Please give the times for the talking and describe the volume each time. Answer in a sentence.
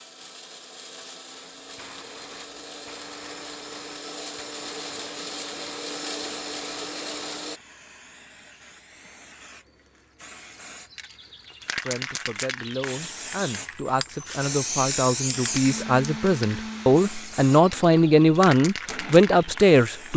The talking can be heard from 11.8 to 20.1 s, getting louder.